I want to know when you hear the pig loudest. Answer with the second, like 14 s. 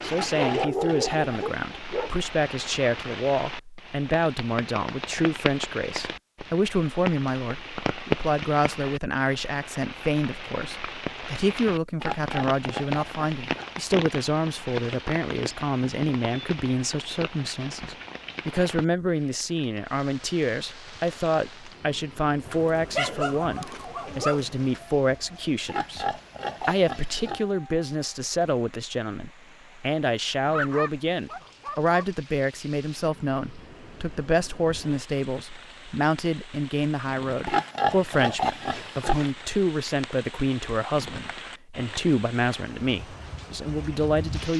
38 s.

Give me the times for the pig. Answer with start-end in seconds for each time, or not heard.
0.1-1.6, 12.0-13.7, 25.6-27.4, 37.5-39.3.